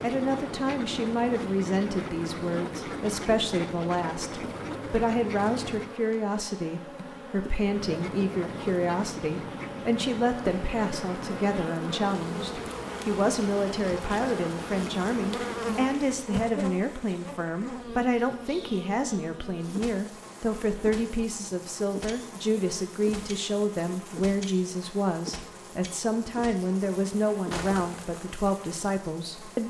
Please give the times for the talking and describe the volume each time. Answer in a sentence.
The talking can be heard from 0.0 to 29.6 s, at a steady volume.